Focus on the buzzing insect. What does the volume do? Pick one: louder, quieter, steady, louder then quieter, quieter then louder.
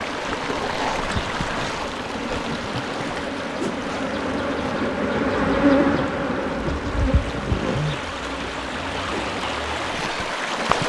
louder then quieter.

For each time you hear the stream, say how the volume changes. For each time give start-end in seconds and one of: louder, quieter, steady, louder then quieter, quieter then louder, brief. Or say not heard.
0.0-10.8 quieter then louder.